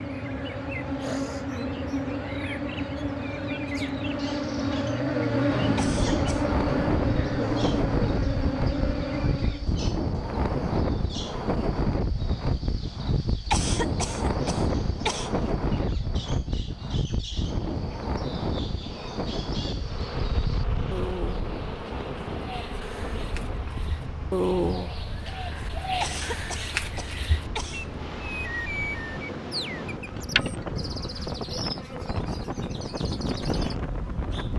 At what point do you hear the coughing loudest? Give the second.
14 s.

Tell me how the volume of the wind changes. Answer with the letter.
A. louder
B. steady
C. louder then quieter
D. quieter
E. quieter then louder
E.